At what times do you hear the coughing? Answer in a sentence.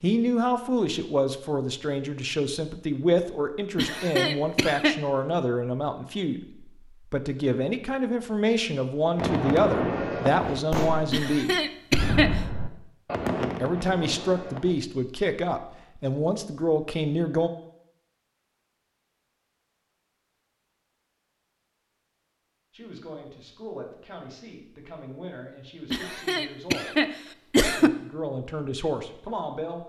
You can hear the coughing from 3.8 to 5.0 s, from 11.1 to 12.4 s and from 25.9 to 27.9 s.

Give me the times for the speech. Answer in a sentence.
You can hear the speech from 0.0 to 11.6 s, from 13.6 to 17.5 s, from 22.7 to 26.9 s and from 27.6 to 29.8 s.